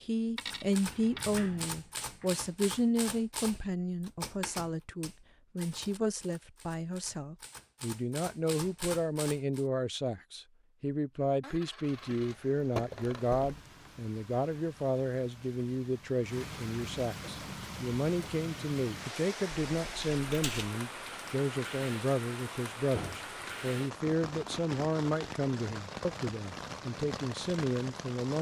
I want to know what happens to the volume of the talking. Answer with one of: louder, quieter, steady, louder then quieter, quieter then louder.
steady.